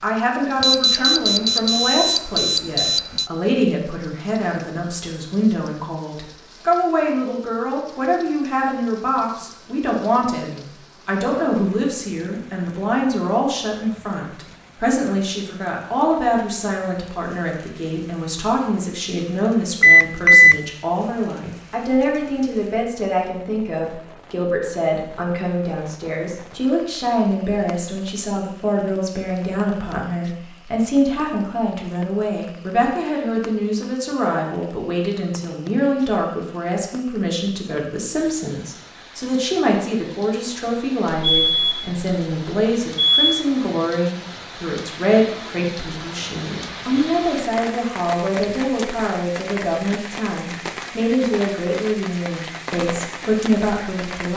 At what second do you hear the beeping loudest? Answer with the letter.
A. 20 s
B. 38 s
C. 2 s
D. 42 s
A.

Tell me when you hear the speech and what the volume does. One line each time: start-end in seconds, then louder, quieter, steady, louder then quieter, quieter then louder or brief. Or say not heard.
0.0-54.3 steady.